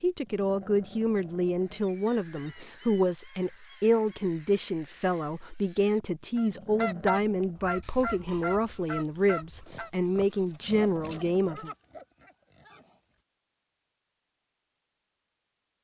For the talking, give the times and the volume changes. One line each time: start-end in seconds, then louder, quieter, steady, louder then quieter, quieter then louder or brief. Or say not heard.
0.0-11.7 steady.